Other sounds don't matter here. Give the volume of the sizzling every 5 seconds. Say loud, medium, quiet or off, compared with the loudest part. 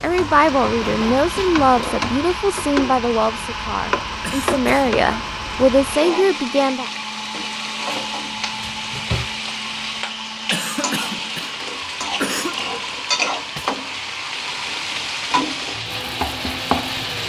medium, medium, loud, loud.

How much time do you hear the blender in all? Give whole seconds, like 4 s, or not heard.
17 s.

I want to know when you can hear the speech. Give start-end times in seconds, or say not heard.
0.0-6.9.